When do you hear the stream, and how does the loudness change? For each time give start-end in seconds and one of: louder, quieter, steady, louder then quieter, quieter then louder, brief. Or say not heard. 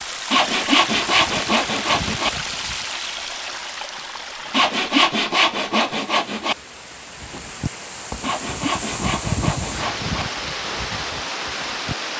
0.0-12.1 quieter then louder.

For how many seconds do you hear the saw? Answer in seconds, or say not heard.
6 s.